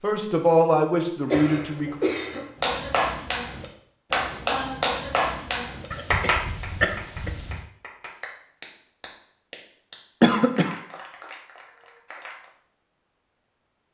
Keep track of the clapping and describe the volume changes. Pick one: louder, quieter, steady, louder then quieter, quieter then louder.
quieter.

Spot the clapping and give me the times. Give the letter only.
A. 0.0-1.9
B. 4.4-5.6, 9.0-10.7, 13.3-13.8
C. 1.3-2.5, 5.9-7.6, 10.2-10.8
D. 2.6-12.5
D.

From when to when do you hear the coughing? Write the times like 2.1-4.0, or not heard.
1.3-2.5, 5.9-7.6, 10.2-10.8.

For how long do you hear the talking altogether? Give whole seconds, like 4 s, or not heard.
2 s.